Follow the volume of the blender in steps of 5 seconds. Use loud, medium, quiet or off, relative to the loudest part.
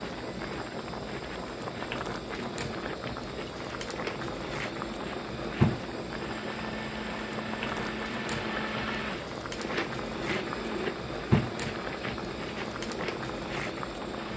medium, loud, loud.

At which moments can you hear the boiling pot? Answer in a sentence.
You can hear the boiling pot from 0.0 to 14.3 s.